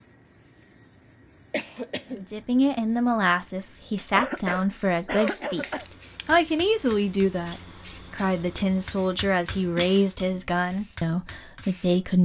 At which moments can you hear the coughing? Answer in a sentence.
The coughing can be heard from 1.5 to 2.2 s, from 4.2 to 5.8 s and from 9.5 to 10.2 s.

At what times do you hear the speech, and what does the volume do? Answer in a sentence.
You can hear the speech from 2.1 to 12.1 s, at a steady volume.